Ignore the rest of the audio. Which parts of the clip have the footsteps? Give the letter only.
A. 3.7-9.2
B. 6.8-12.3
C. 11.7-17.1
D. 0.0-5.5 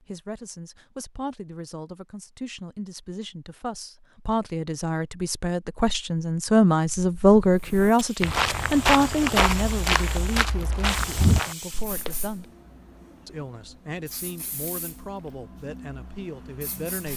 B.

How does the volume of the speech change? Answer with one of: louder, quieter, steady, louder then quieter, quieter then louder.
louder then quieter.